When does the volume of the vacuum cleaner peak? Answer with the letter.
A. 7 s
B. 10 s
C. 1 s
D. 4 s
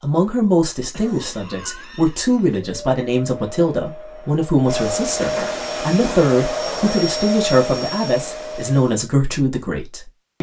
A.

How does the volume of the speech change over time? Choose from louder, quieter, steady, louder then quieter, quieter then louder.
steady.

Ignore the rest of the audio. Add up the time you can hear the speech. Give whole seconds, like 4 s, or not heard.
10 s.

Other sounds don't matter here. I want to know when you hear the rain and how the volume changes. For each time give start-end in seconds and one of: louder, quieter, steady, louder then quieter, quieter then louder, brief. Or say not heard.
not heard.